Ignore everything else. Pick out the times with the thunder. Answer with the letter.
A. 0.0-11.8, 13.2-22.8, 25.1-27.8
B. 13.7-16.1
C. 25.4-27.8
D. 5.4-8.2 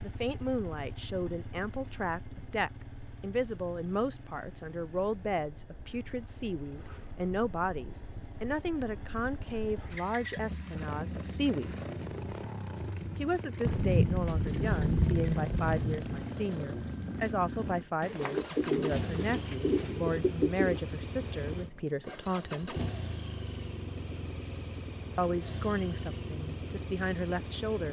B.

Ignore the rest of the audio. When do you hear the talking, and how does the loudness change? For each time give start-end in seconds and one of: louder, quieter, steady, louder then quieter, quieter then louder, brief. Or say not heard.
0.0-11.8 steady
13.2-22.8 steady
25.1-27.8 brief.